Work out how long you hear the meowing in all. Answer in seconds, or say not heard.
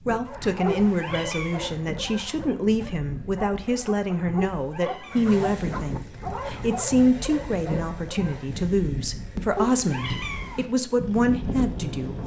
3 s.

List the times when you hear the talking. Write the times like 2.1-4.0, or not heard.
0.1-12.2.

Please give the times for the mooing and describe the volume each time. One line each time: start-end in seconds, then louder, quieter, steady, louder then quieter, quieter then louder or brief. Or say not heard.
not heard.